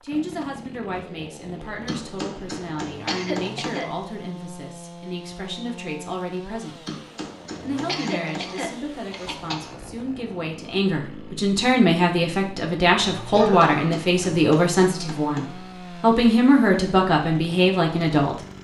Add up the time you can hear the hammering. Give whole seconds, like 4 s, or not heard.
6 s.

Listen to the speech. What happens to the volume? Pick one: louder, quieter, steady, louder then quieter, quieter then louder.
louder.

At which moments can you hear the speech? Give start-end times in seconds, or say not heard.
0.0-6.8, 7.6-18.4.